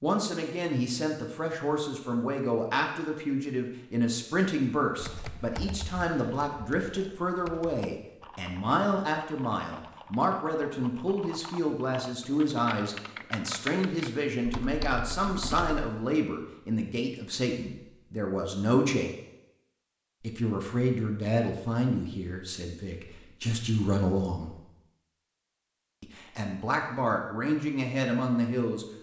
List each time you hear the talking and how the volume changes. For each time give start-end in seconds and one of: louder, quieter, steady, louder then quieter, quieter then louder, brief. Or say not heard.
0.0-19.1 steady
20.2-24.6 quieter then louder
26.0-28.9 brief.